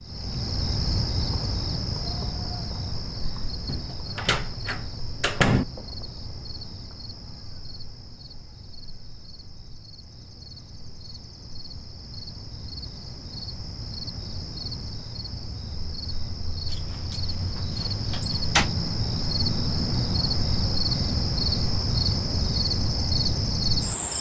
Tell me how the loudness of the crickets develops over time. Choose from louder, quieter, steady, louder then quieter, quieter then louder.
quieter then louder.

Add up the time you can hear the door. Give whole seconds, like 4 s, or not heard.
4 s.